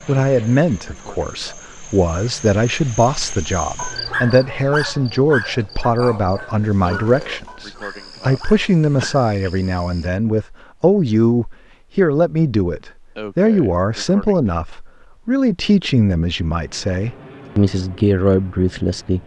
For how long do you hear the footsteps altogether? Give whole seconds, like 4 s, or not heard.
not heard.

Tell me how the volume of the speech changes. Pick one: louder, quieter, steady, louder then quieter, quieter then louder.
steady.